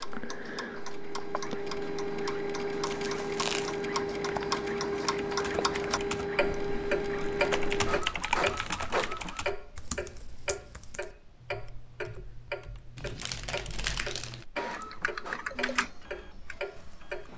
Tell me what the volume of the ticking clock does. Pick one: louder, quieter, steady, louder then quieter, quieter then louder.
louder then quieter.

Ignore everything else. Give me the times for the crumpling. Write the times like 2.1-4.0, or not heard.
2.9-3.8, 7.2-9.4, 12.9-14.4.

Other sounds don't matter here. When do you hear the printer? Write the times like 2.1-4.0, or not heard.
0.0-9.4, 14.6-17.3.